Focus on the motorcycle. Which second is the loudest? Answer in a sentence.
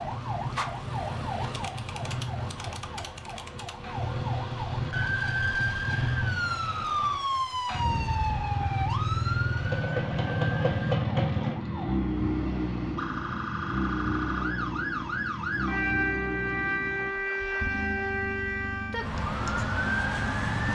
The loudest moment of the motorcycle is at 11 seconds.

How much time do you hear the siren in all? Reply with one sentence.
You can hear the siren for 21 seconds altogether.